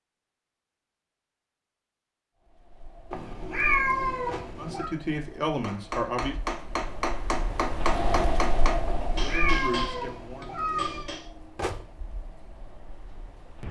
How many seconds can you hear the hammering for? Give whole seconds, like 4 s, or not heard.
6 s.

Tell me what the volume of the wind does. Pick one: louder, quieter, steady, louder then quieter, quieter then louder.
louder then quieter.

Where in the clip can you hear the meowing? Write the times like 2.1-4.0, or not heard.
3.1-4.9, 8.8-11.1.